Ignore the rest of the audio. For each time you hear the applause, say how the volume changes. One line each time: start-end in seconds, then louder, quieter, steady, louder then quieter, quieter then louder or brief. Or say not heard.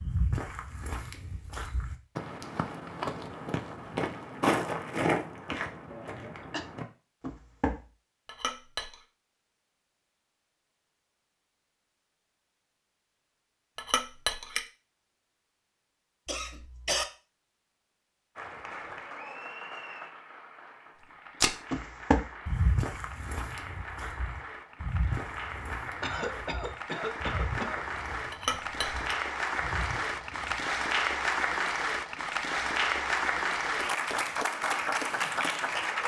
18.4-36.0 louder.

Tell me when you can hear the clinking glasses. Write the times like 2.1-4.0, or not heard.
8.2-8.9, 13.8-14.6, 28.3-29.1.